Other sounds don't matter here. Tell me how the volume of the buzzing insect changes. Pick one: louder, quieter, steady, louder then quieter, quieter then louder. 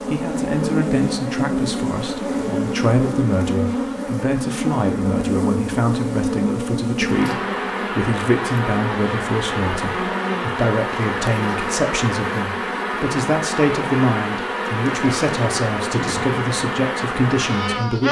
steady.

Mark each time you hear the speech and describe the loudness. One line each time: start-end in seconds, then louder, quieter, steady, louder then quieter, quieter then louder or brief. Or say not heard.
0.1-18.0 steady.